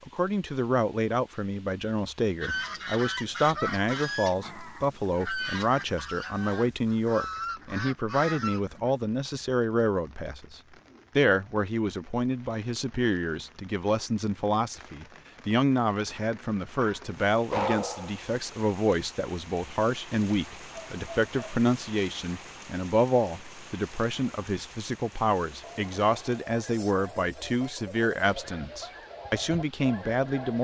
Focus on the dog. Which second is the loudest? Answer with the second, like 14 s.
18 s.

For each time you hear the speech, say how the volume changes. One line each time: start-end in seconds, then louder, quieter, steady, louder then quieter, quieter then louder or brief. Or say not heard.
0.1-30.5 steady.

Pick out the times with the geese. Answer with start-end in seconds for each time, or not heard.
2.4-8.9, 25.6-30.5.